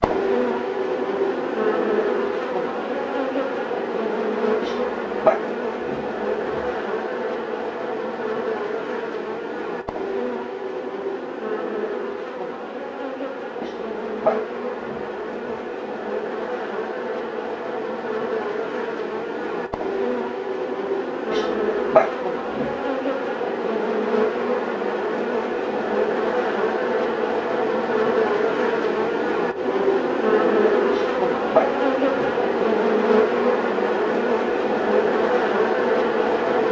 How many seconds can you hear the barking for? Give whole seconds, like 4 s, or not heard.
7 s.